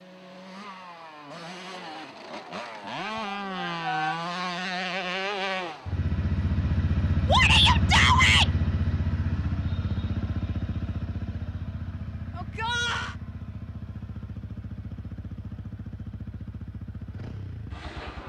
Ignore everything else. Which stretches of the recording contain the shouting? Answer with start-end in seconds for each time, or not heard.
3.0-4.2, 7.2-8.5, 12.3-13.2.